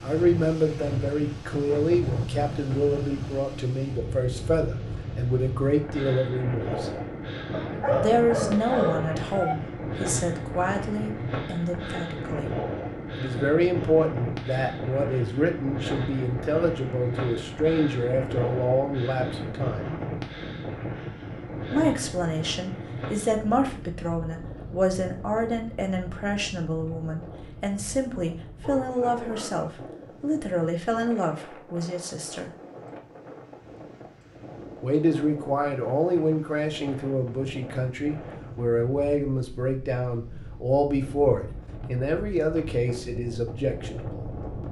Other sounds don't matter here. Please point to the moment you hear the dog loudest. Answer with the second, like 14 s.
8 s.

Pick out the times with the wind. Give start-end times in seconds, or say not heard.
0.0-44.6.